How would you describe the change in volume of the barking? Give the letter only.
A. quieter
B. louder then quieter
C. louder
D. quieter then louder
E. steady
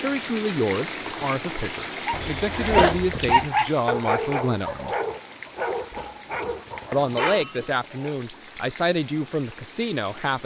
A.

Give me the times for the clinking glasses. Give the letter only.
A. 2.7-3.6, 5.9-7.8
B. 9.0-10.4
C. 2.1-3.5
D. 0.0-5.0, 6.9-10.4
A.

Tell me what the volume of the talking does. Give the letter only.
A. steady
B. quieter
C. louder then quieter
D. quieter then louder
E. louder
A.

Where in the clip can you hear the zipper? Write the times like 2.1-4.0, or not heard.
2.1-3.5.